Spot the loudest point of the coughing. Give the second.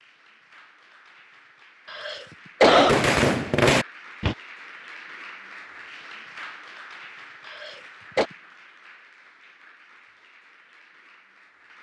3 s.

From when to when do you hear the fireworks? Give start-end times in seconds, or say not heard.
2.8-4.3.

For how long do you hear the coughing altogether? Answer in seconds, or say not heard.
2 s.